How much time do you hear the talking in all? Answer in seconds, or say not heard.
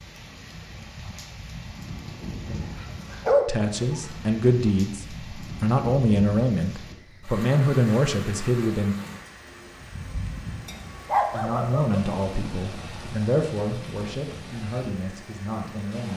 10 s.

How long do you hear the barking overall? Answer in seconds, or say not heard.
3 s.